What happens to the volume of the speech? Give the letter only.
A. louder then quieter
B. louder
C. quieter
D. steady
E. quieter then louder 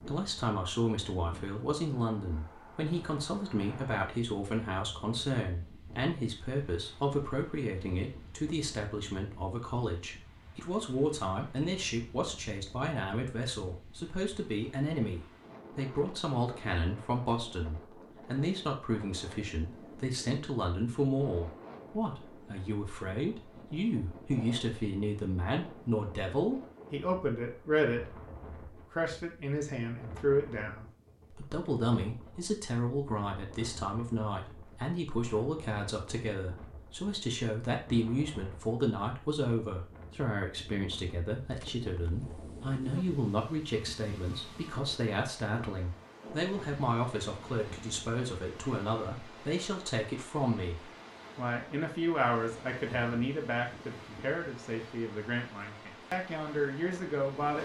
D.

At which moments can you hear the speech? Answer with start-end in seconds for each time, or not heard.
0.0-57.5.